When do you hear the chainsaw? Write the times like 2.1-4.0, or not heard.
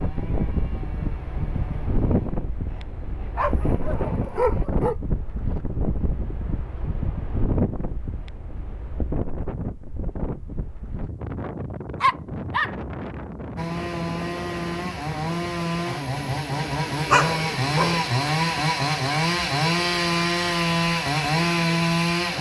0.0-4.7, 13.6-22.3.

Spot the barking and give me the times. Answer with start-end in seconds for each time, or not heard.
3.4-5.0, 12.0-12.7, 17.1-18.0.